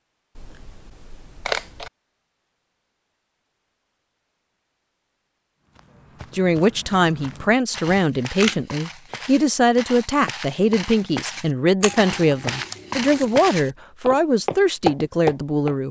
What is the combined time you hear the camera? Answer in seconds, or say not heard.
4 s.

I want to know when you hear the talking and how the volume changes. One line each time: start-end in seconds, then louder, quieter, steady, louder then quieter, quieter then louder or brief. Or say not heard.
6.3-15.8 steady.